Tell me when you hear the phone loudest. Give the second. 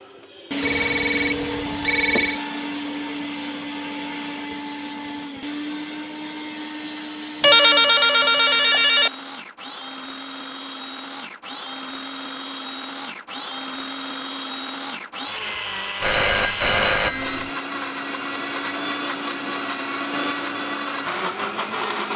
8 s.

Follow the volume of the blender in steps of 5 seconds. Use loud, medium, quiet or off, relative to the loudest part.
loud, medium, medium, loud, loud.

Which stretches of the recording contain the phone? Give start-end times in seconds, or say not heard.
0.6-2.4, 7.4-9.1, 16.0-17.5.